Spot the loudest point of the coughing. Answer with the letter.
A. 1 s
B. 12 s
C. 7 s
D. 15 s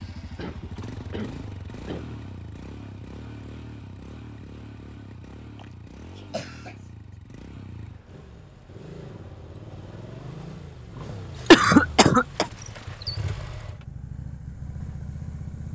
B.